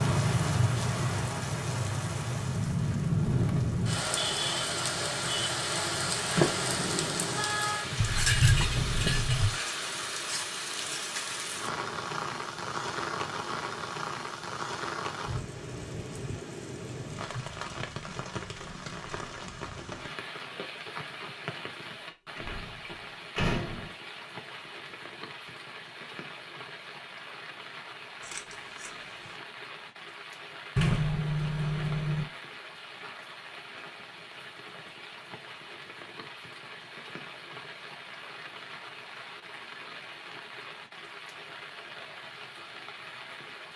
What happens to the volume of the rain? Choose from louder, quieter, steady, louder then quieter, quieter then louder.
quieter.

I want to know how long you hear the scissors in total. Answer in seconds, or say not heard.
3 s.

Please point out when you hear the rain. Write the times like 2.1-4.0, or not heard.
0.0-43.7.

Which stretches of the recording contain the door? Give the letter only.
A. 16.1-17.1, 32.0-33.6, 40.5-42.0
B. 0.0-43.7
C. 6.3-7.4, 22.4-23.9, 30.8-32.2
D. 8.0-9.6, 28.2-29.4
C.